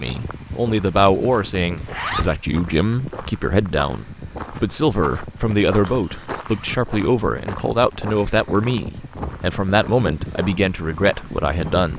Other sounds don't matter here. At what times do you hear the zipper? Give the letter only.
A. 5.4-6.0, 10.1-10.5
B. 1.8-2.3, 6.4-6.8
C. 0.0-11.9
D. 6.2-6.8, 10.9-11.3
B.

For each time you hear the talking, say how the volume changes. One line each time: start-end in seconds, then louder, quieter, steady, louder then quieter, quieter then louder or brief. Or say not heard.
0.0-11.9 steady.